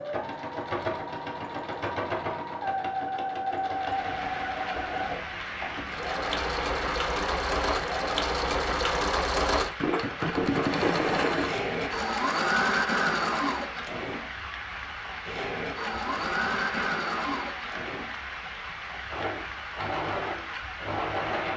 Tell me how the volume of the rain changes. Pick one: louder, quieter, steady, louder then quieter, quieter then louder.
steady.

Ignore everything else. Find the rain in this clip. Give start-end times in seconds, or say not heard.
3.7-21.5.